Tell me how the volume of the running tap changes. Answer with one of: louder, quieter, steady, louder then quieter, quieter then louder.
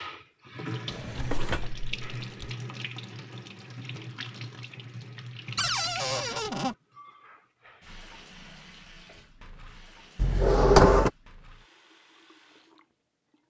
quieter.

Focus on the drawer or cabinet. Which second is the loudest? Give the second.
11 s.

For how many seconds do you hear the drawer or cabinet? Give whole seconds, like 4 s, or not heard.
4 s.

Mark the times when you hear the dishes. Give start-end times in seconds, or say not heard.
not heard.